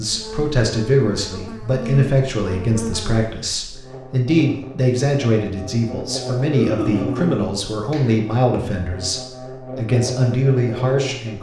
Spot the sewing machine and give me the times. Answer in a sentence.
You can't hear the sewing machine here.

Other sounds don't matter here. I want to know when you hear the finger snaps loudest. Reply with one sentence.
The volume of the finger snaps peaks at 7 seconds.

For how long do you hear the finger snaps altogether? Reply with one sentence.
You can hear the finger snaps for 2 seconds altogether.